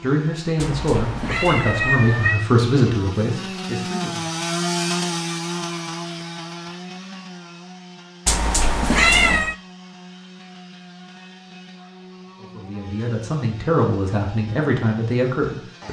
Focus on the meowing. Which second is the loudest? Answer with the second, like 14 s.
9 s.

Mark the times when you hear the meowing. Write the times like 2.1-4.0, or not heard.
0.6-2.5, 8.2-9.6.